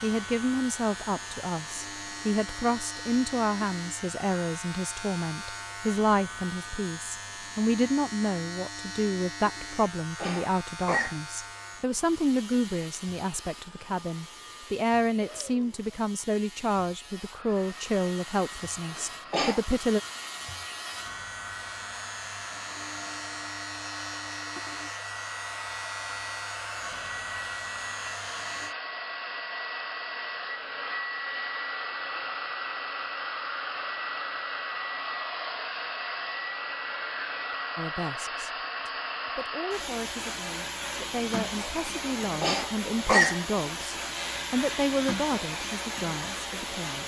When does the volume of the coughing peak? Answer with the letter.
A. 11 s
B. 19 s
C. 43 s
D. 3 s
C.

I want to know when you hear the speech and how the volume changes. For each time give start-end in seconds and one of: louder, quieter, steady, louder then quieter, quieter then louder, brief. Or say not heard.
0.0-20.0 steady
37.8-47.0 louder.